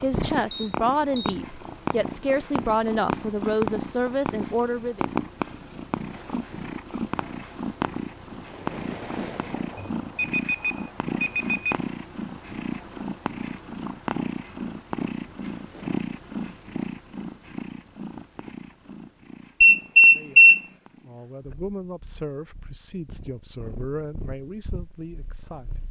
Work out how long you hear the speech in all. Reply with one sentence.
The speech can be heard for 11 seconds in total.